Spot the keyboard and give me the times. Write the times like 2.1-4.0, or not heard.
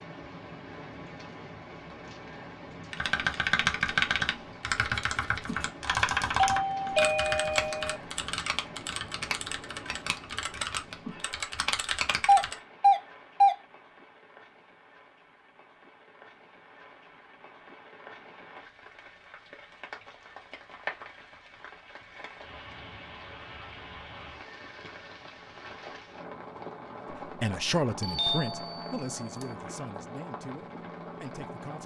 2.9-12.6.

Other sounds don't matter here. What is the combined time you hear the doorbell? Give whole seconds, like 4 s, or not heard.
4 s.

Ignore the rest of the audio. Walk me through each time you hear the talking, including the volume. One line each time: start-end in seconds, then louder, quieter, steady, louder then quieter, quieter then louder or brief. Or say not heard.
27.2-31.8 quieter.